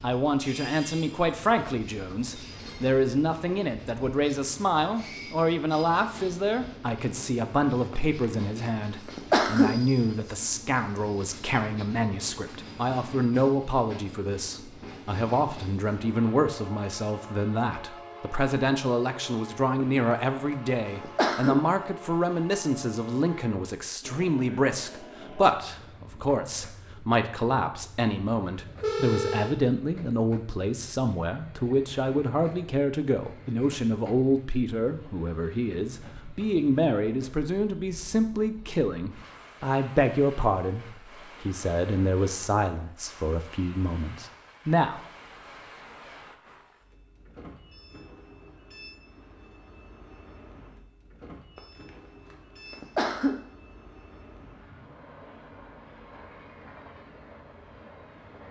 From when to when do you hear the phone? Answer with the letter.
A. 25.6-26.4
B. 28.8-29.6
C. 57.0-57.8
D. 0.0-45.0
B.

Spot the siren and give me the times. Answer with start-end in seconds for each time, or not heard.
not heard.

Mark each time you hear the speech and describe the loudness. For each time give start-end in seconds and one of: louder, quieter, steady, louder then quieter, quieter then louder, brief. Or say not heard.
0.0-45.0 steady.